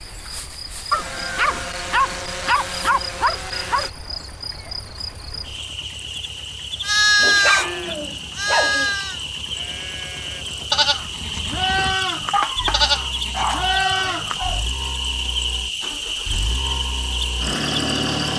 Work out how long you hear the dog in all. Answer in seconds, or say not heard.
7 s.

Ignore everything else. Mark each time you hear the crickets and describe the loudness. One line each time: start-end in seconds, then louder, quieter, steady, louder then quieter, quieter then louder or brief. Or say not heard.
0.0-18.3 louder.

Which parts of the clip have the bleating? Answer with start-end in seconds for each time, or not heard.
6.8-14.4.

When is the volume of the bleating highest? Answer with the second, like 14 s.
7 s.